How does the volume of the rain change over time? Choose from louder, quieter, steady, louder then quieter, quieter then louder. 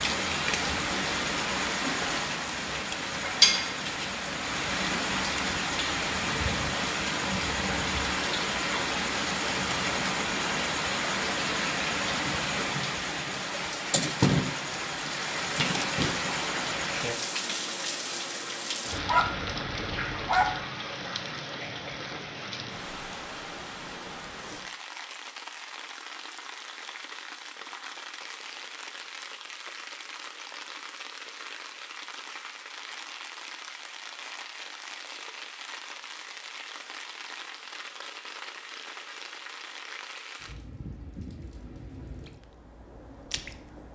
quieter.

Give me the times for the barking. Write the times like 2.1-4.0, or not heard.
18.9-20.6.